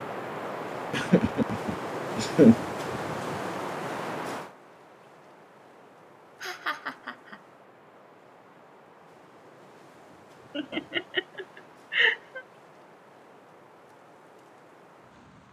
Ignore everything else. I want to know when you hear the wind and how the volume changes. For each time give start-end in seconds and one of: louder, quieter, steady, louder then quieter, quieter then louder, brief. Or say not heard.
0.0-15.4 quieter.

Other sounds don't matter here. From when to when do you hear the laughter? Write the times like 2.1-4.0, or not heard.
0.9-3.1, 6.4-7.4, 10.6-12.4.